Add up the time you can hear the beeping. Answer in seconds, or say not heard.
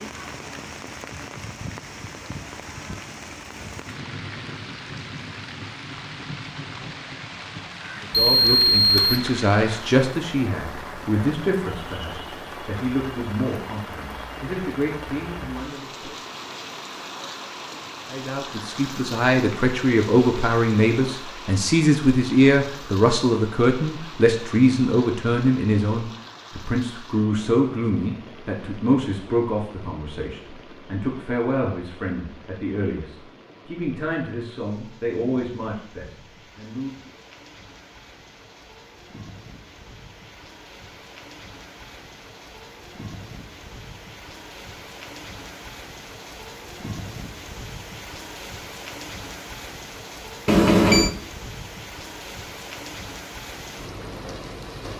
2 s.